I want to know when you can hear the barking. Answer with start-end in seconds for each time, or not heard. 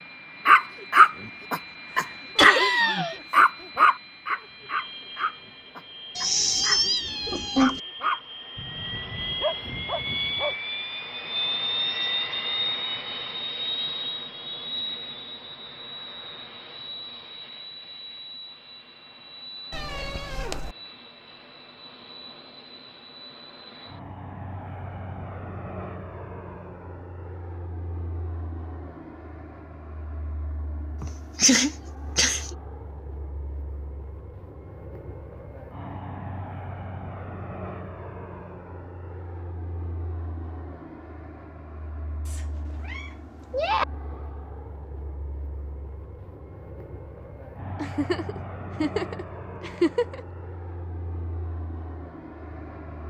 0.5-2.7, 3.3-7.0, 7.5-10.6.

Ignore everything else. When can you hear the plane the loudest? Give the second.
12 s.